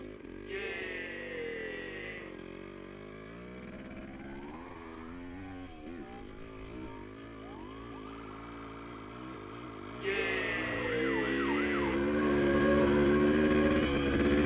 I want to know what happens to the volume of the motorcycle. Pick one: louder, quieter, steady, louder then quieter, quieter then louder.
louder.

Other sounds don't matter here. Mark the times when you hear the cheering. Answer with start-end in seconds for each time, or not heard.
0.5-2.4, 10.0-12.0.